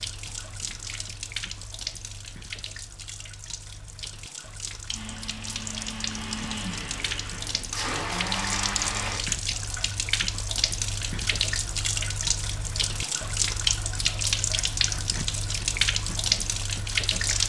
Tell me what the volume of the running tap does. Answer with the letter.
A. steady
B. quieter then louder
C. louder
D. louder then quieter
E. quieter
C.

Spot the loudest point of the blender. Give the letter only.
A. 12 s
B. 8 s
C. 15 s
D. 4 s
B.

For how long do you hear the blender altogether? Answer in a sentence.
The blender can be heard for 4 seconds in total.